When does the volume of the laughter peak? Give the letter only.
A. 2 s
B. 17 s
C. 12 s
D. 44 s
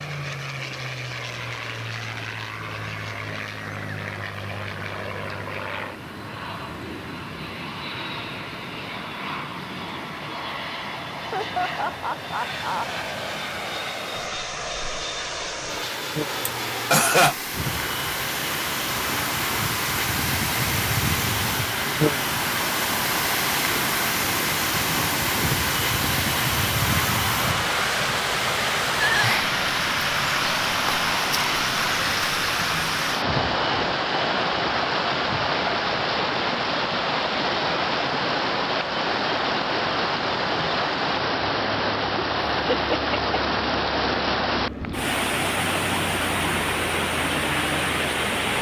B.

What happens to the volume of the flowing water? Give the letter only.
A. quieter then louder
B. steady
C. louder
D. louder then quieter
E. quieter
C.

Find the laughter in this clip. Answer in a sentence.
You can hear the laughter from 11.3 to 12.8 s, from 16.4 to 17.4 s and from 42.7 to 43.4 s.